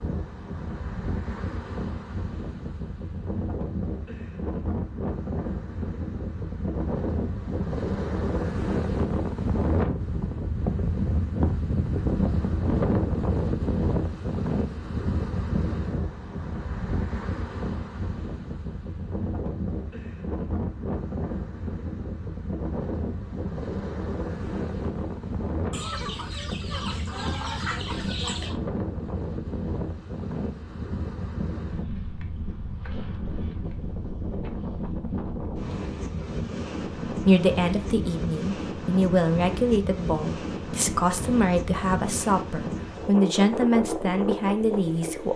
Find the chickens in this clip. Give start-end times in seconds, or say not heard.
25.7-28.6.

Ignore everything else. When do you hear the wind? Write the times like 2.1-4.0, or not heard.
0.0-45.3.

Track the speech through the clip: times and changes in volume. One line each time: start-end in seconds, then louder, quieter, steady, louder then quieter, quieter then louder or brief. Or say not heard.
37.0-45.3 steady.